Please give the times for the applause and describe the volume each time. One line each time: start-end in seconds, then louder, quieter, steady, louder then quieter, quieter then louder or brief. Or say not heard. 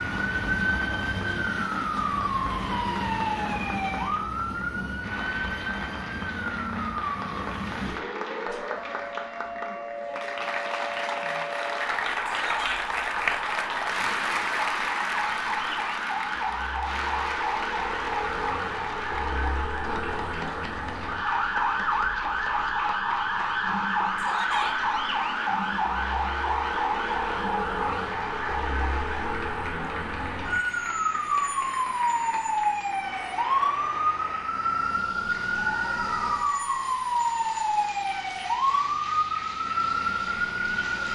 0.0-41.1 louder then quieter.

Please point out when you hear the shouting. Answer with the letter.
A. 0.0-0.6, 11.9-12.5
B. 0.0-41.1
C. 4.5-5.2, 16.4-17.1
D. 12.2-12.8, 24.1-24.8
D.